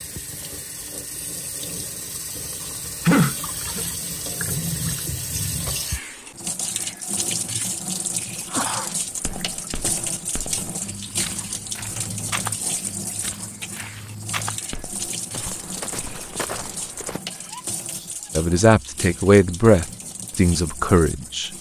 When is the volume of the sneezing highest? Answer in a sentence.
The loudest moment of the sneezing is at 3 seconds.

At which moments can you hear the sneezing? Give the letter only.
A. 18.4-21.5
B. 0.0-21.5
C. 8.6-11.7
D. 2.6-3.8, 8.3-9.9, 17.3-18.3
D.